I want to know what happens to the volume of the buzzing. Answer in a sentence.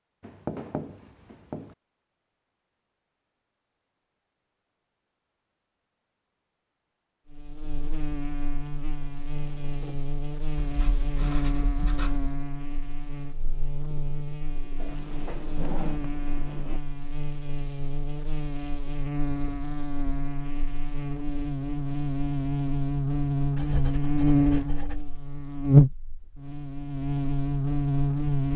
The loudness of the buzzing goes up.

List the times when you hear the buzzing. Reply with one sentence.
The buzzing can be heard from 7.3 to 28.5 s.